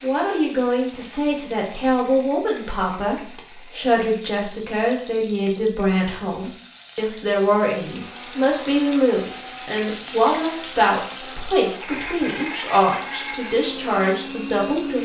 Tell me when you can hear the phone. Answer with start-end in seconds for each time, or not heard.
not heard.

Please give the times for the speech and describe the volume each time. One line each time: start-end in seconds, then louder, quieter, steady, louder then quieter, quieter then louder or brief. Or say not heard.
0.0-15.0 steady.